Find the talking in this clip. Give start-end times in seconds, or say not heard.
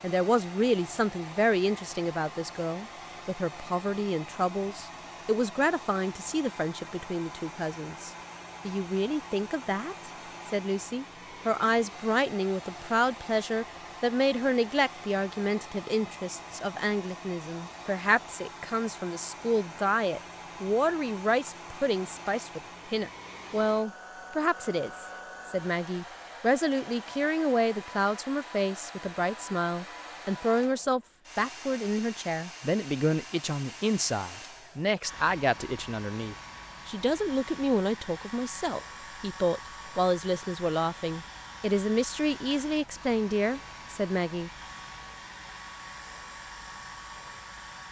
0.0-44.5.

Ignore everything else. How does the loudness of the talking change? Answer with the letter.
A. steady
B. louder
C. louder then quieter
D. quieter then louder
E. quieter
A.